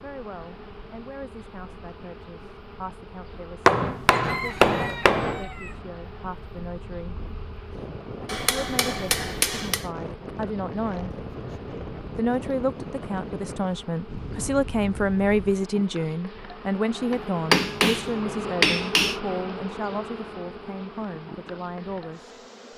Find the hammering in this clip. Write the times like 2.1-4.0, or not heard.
3.6-5.5, 8.2-9.8, 17.1-19.2.